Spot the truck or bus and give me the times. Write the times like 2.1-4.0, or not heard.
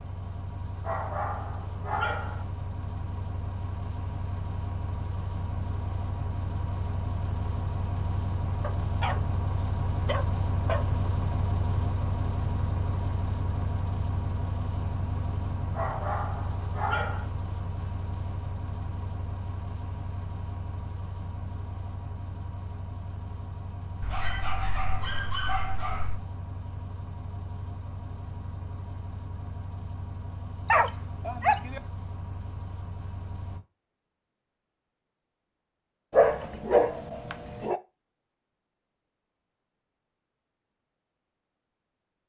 0.0-33.6.